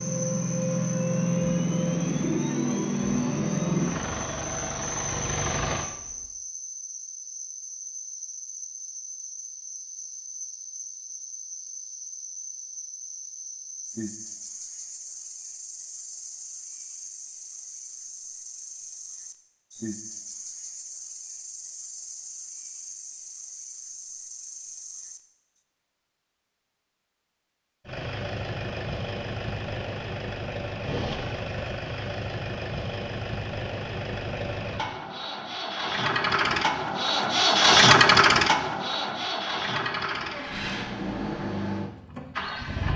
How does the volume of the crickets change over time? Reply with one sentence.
The volume of the crickets stays about the same.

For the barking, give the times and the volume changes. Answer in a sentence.
You can't hear the barking here.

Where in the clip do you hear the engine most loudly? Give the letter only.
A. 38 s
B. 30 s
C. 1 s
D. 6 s
A.